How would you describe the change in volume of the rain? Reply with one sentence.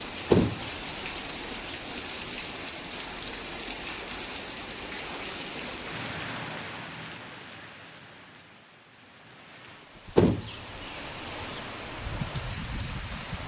The volume of the rain goes down, then up.